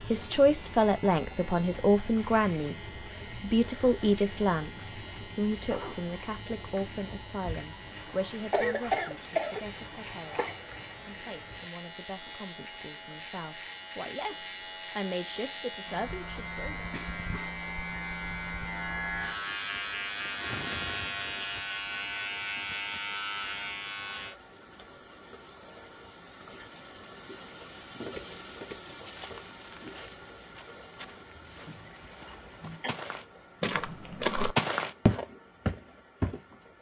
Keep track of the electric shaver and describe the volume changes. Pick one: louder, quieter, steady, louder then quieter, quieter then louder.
louder.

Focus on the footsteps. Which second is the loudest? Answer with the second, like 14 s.
34 s.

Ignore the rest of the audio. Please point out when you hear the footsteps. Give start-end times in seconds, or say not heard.
28.1-36.5.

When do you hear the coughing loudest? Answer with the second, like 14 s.
9 s.